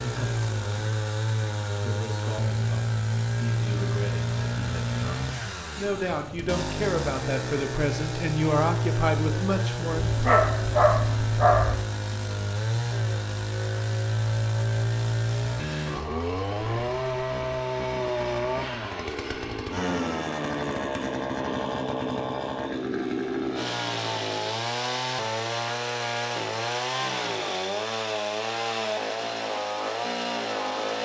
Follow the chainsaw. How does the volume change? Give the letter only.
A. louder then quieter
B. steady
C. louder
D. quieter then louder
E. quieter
B.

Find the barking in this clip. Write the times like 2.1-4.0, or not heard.
10.0-11.8.